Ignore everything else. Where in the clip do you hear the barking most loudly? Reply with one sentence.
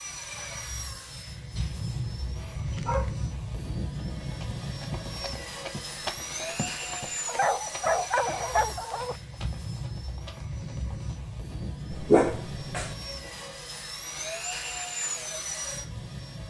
The loudest moment of the barking is at 12 seconds.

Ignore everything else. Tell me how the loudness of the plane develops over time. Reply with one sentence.
The volume of the plane stays about the same.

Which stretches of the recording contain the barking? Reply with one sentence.
You can hear the barking from 1.6 to 3.1 s, from 7.2 to 9.2 s and from 11.9 to 12.9 s.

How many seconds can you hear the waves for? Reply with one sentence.
The waves can't be heard in this clip.